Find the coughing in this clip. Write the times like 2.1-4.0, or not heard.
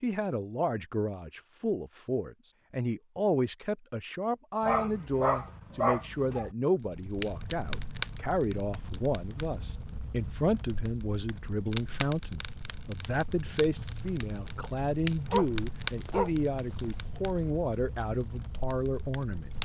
not heard.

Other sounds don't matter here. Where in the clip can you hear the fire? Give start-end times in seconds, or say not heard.
6.8-19.6.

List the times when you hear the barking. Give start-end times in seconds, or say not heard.
4.6-6.5, 14.6-17.1.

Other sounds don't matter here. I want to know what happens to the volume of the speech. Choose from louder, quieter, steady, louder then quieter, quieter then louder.
steady.